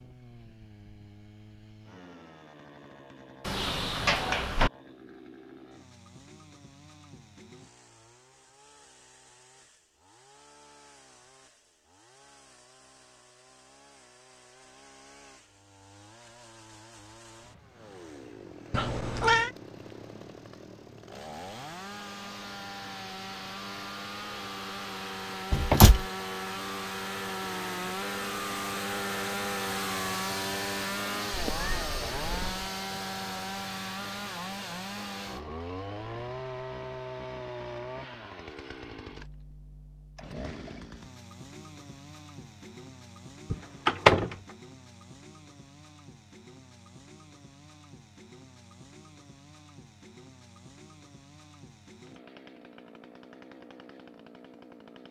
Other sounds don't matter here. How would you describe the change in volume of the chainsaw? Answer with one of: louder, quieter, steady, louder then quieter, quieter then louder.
louder then quieter.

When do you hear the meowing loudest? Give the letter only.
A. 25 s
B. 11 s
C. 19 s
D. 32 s
C.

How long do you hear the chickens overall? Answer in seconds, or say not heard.
not heard.